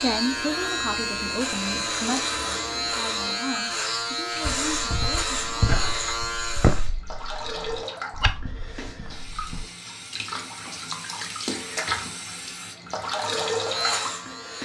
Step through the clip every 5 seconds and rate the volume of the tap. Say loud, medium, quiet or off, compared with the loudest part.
medium, medium, loud.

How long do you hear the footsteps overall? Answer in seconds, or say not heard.
5 s.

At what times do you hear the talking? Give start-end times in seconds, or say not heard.
0.0-5.5.